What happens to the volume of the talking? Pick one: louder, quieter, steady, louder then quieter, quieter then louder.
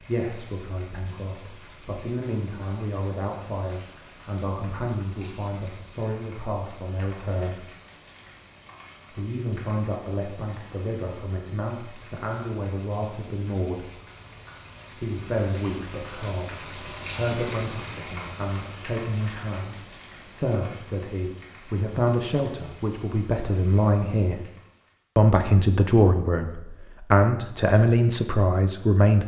louder.